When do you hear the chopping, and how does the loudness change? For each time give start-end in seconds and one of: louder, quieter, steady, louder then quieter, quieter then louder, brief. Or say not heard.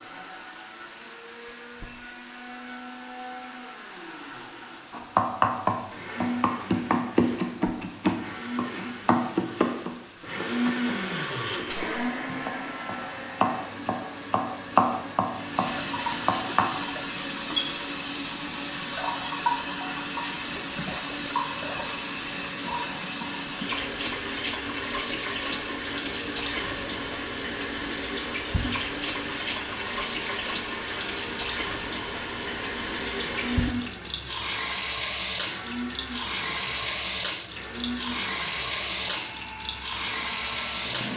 4.9-16.7 quieter then louder.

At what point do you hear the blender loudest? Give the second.
11 s.